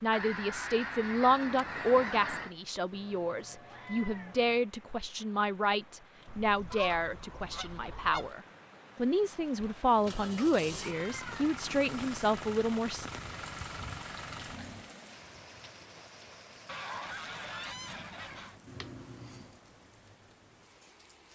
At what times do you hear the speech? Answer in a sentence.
The speech can be heard from 0.0 to 13.1 s.